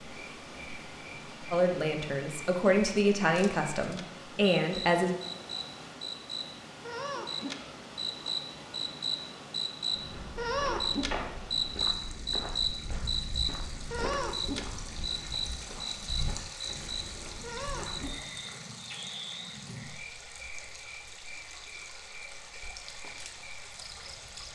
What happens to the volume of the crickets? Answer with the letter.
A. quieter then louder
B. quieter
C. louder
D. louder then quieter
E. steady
D.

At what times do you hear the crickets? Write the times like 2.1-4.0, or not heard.
0.0-24.5.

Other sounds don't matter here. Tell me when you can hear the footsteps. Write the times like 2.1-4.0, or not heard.
9.9-18.2.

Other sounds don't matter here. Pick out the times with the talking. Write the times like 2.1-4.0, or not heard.
1.5-5.1.